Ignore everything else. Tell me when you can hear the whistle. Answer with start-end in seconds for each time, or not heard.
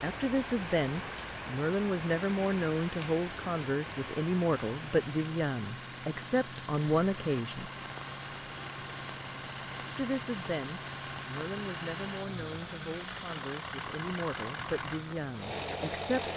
not heard.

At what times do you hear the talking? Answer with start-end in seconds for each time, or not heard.
0.0-7.7, 9.9-16.3.